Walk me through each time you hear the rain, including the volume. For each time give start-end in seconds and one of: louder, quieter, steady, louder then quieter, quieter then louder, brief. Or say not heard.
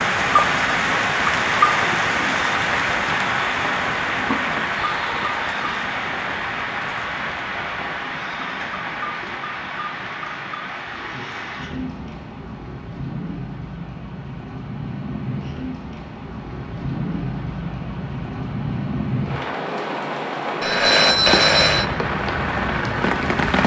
0.0-23.6 quieter then louder.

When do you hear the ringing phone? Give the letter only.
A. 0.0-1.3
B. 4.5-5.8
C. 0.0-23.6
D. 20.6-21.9
D.